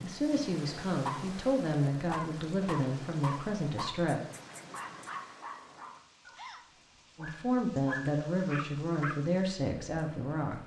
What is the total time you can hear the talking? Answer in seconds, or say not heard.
8 s.